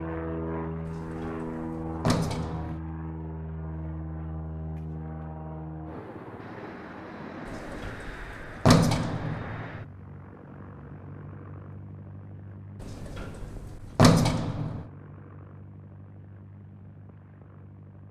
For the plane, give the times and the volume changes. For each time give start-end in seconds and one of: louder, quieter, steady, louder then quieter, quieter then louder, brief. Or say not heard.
0.0-18.0 quieter.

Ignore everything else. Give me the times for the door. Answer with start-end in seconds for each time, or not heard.
0.8-2.8, 7.5-9.8, 12.8-14.8.